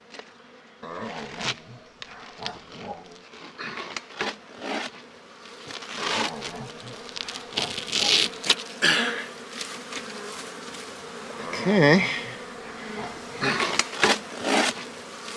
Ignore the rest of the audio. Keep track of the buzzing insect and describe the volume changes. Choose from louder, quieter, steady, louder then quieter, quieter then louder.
louder.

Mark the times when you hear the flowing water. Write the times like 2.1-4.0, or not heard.
not heard.